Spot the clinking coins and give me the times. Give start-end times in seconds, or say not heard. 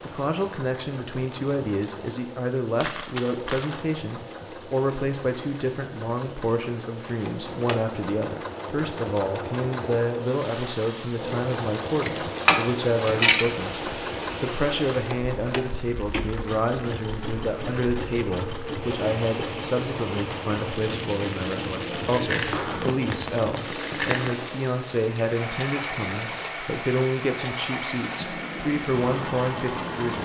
2.8-3.9, 12.0-13.4, 21.9-24.2.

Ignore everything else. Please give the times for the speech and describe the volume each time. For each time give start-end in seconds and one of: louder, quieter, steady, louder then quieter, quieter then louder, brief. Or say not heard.
0.0-30.2 steady.